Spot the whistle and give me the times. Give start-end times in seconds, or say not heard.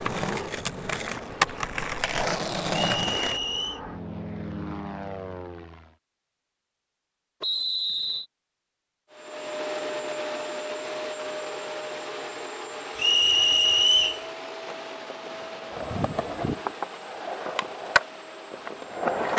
3.0-3.8, 7.4-8.2, 12.9-14.2.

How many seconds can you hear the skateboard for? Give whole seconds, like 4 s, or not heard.
8 s.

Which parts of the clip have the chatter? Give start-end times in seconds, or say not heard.
not heard.